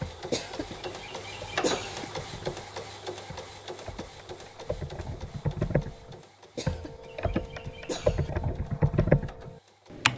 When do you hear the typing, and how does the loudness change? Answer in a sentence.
You can hear the typing from 0.0 to 10.1 s, getting louder.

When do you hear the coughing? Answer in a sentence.
You can hear the coughing from 0.3 to 2.0 s and from 6.5 to 8.3 s.